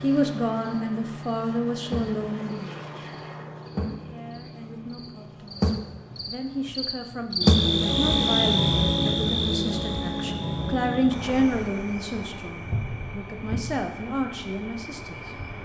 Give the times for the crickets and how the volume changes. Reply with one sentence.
The crickets can be heard from 0.0 to 15.6 s, getting louder then quieter.